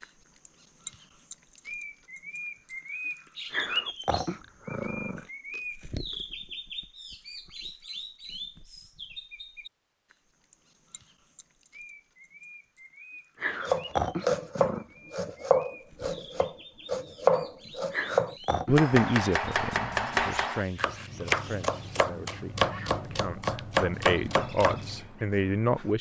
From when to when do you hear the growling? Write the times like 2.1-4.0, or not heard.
3.5-5.2, 13.3-14.8, 17.9-18.8.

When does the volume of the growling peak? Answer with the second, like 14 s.
14 s.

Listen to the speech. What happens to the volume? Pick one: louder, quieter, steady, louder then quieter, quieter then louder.
quieter then louder.